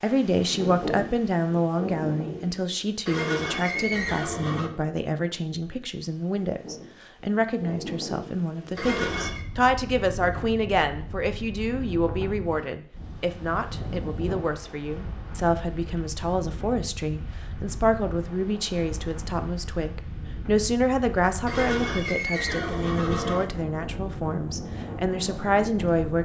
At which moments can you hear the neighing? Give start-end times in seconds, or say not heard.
3.0-4.7, 8.8-9.4, 21.4-23.4.